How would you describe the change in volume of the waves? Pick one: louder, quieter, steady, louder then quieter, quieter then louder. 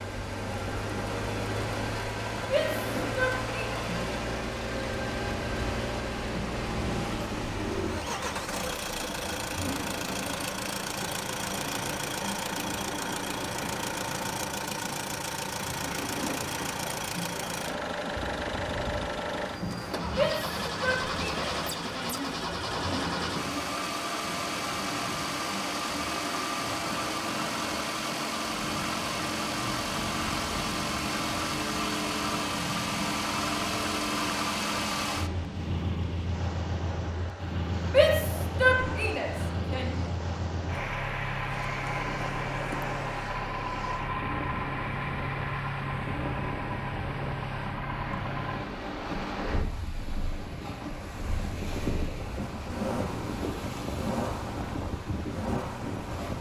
steady.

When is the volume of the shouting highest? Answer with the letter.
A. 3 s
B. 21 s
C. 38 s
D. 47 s
C.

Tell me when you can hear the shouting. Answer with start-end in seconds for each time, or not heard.
2.4-3.9, 20.1-22.3, 37.9-40.0.